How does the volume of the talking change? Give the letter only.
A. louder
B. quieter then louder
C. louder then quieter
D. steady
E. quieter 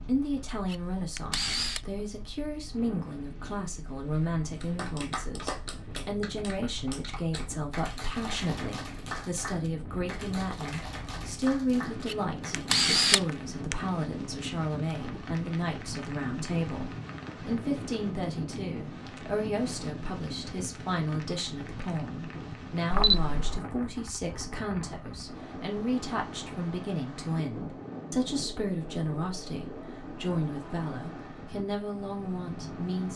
D.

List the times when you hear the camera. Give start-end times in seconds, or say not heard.
0.7-1.8, 12.1-13.8, 22.9-23.6.